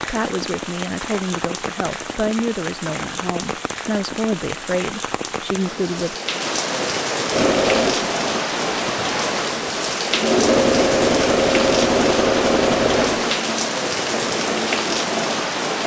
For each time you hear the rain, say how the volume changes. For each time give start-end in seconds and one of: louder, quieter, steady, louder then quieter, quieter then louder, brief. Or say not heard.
0.0-15.8 louder.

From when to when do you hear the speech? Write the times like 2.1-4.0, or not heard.
0.1-6.2.